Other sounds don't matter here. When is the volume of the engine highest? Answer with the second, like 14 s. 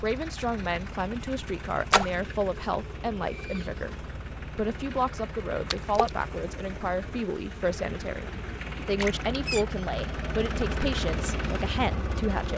11 s.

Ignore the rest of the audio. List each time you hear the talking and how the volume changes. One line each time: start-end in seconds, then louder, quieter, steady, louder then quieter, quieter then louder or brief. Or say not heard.
0.0-12.5 steady.